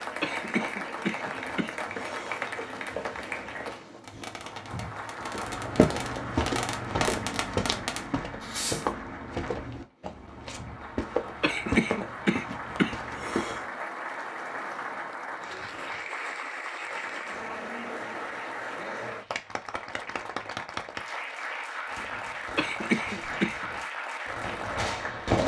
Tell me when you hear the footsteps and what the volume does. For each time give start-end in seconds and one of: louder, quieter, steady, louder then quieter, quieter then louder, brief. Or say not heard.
5.2-13.7 quieter.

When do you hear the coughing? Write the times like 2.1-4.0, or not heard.
0.2-2.5, 11.4-13.6, 22.6-23.6.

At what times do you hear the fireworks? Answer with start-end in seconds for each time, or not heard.
1.1-8.9, 21.9-25.4.